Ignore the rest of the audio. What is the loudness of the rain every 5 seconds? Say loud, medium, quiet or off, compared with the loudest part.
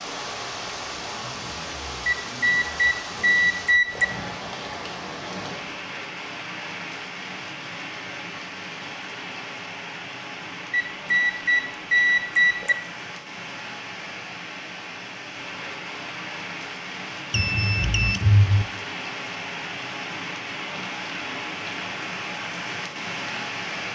loud, loud, medium, loud, loud.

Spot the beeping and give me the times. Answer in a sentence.
You can hear the beeping from 2.0 to 4.0 s, from 10.7 to 12.8 s and from 17.3 to 18.6 s.